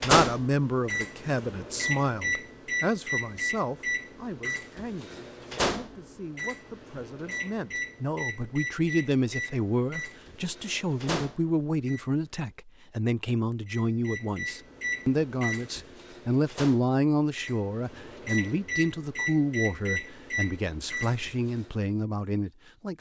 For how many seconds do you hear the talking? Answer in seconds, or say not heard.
23 s.